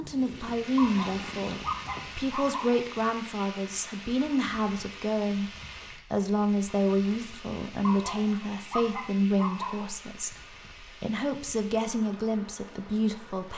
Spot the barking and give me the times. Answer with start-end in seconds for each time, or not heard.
0.8-2.8, 7.8-9.8.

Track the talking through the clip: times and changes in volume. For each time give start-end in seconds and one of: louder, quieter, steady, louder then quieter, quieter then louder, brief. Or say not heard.
0.0-13.5 steady.